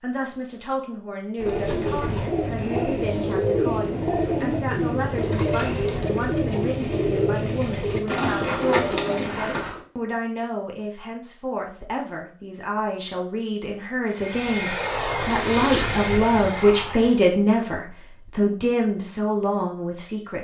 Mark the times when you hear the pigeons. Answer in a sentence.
You can hear the pigeons from 1.4 to 9.8 s.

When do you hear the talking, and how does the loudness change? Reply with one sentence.
The talking can be heard from 0.0 to 20.3 s, getting louder.